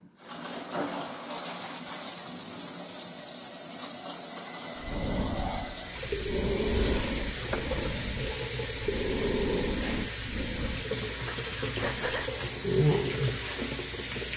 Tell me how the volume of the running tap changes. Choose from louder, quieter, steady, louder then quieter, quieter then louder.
louder.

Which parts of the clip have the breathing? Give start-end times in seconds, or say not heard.
4.8-12.3.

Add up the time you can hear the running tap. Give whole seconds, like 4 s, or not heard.
14 s.